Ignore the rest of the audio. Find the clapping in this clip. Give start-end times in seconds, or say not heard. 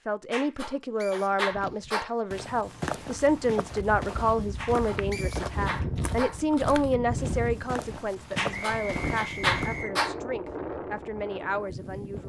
0.3-2.1, 4.5-6.4, 8.3-10.2.